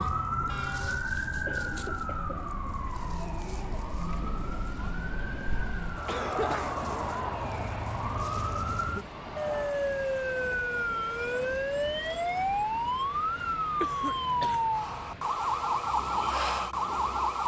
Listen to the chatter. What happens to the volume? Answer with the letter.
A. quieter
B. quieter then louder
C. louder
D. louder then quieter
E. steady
D.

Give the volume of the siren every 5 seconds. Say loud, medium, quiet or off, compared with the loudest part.
medium, medium, loud, loud.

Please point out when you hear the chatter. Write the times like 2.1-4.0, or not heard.
0.0-9.9.